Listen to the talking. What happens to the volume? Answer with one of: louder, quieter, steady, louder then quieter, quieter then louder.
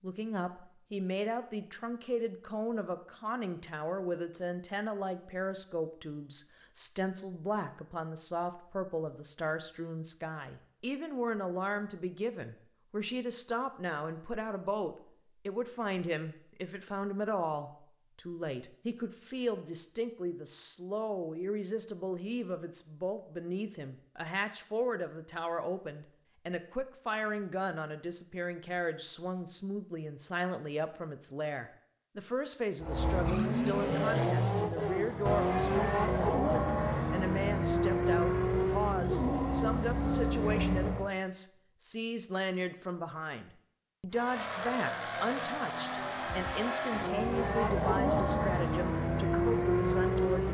steady.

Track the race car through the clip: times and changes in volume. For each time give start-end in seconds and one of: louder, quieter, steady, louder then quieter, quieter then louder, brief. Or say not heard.
32.8-41.1 steady
44.1-50.4 louder.